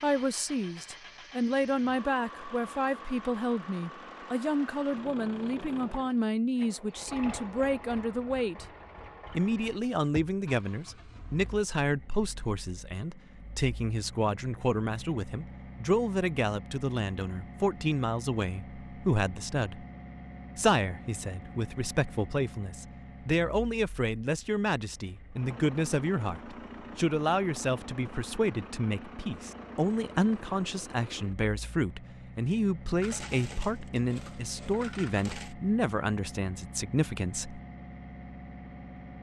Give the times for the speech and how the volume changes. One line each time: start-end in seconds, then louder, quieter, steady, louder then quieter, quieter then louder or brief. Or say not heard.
0.0-8.7 steady
9.3-19.9 steady
20.6-37.6 steady.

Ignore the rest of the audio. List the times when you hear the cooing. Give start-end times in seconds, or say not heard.
not heard.